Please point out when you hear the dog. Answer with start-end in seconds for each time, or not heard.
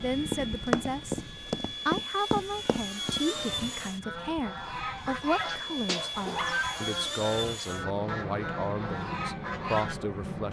5.0-6.6.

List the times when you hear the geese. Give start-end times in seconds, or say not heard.
3.8-10.0.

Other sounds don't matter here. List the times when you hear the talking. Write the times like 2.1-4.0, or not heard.
0.0-1.2, 1.9-10.4.